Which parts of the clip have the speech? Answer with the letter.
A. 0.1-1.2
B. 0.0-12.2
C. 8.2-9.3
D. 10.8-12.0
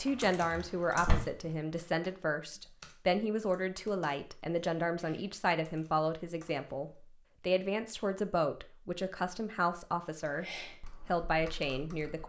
B.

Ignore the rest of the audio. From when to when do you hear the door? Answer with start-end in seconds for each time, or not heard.
0.1-1.2.